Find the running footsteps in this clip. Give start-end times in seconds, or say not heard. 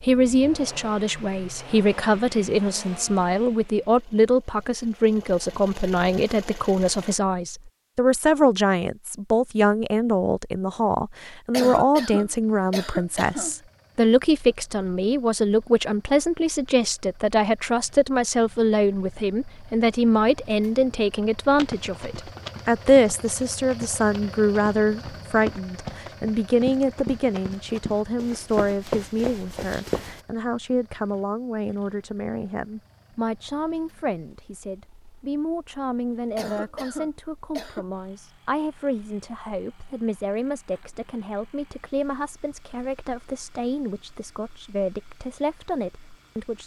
21.6-30.2.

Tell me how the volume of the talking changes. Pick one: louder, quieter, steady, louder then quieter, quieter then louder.
quieter.